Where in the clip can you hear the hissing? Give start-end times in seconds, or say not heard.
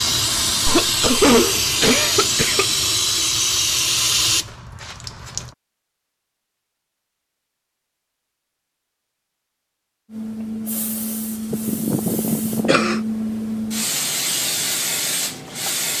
0.0-5.5, 10.1-15.9.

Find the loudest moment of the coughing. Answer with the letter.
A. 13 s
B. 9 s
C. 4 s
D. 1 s
D.